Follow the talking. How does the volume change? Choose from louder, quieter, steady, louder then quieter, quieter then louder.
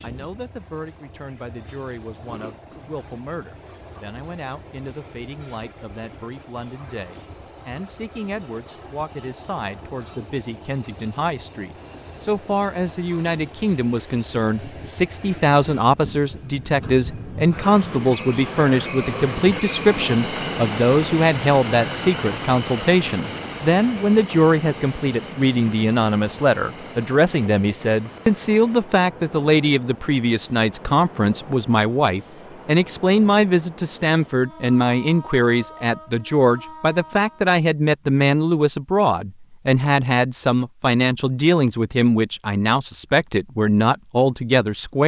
louder.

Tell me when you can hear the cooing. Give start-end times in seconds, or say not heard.
not heard.